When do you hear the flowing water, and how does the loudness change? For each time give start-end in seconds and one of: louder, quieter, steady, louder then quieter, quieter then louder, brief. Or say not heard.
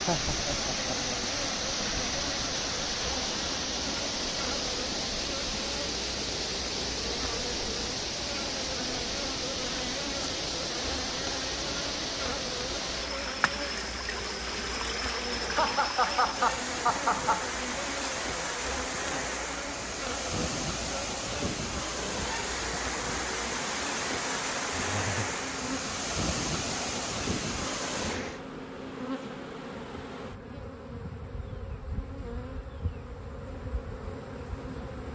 0.0-28.4 steady.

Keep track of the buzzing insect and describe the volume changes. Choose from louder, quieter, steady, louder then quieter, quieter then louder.
steady.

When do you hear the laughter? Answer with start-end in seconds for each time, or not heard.
0.1-1.2, 15.4-17.5, 24.8-25.4.